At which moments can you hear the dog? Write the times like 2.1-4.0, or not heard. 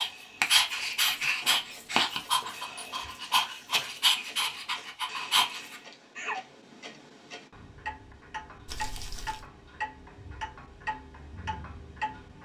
0.0-6.4.